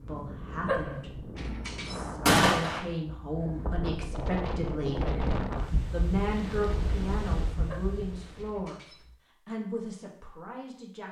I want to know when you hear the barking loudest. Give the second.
1 s.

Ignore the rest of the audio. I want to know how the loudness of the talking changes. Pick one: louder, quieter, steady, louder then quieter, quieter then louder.
louder then quieter.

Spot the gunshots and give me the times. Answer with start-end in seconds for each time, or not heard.
2.2-2.8.